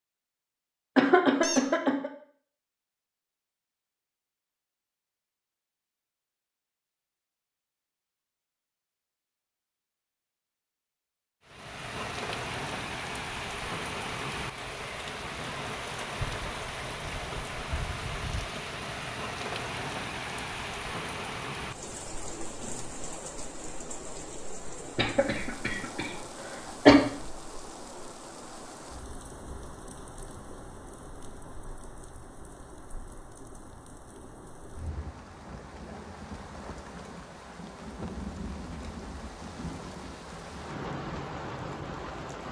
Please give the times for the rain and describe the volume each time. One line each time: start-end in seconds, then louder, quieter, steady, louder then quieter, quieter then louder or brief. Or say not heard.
11.4-42.4 quieter then louder.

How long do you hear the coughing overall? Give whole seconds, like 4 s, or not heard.
2 s.